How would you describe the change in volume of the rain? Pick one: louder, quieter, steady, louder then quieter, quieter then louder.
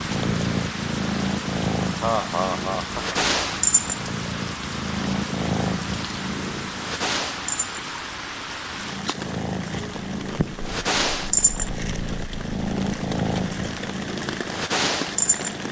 steady.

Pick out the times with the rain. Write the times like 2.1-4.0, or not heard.
0.0-15.6.